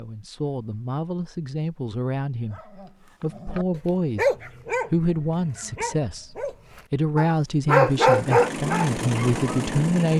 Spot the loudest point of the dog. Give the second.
8 s.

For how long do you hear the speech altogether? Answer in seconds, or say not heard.
10 s.